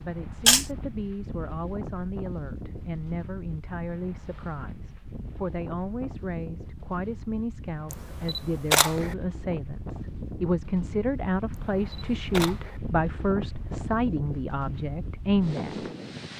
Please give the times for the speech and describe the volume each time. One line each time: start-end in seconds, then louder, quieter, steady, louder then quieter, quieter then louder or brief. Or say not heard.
0.0-15.9 louder.